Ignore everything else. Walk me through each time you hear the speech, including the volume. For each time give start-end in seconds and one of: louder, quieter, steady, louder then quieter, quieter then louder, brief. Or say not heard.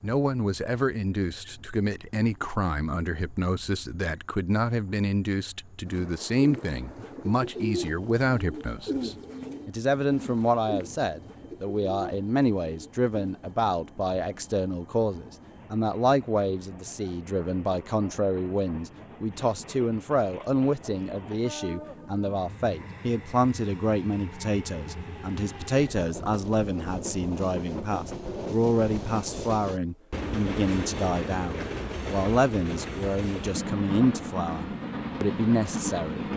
0.0-36.2 steady.